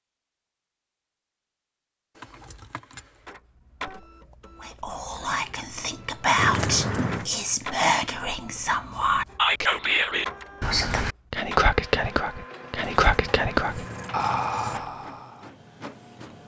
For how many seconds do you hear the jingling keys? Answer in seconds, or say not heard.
4 s.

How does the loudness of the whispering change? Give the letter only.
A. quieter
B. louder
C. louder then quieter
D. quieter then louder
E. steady
E.